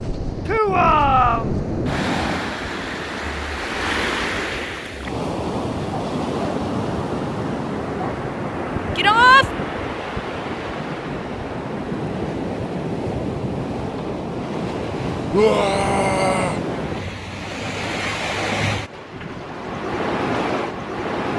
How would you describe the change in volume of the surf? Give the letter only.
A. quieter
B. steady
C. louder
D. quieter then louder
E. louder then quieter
B.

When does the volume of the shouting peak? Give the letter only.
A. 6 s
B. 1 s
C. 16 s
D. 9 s
D.